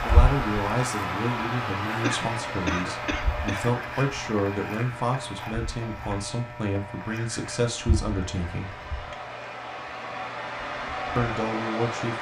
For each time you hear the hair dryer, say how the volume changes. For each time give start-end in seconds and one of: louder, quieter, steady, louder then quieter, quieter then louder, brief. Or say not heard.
0.0-12.1 quieter then louder.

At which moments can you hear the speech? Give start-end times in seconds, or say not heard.
0.1-8.8, 11.2-12.1.